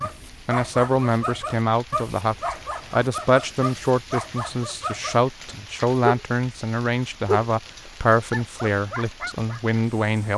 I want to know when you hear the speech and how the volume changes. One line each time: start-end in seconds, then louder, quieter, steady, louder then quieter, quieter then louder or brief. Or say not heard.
0.0-10.3 steady.